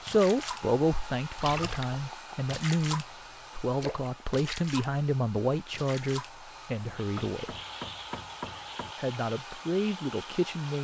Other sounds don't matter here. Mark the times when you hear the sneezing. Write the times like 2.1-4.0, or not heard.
not heard.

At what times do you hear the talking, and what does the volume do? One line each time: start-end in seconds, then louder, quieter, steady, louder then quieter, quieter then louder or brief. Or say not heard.
0.0-7.5 steady
8.9-10.7 brief.